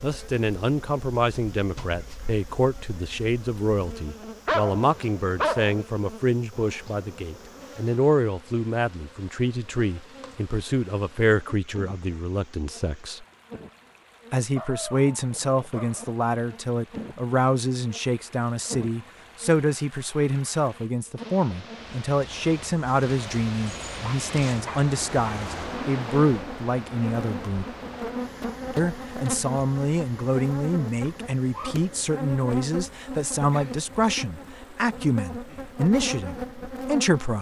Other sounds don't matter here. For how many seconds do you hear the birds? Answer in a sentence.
The birds can't be heard in this clip.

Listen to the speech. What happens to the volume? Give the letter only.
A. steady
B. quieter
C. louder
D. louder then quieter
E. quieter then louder
A.